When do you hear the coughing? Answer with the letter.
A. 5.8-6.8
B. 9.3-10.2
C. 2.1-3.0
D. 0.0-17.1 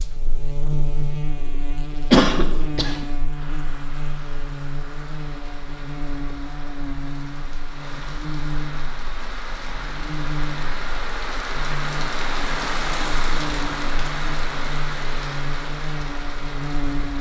C.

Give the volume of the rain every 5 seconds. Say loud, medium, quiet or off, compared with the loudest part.
quiet, medium, loud, medium.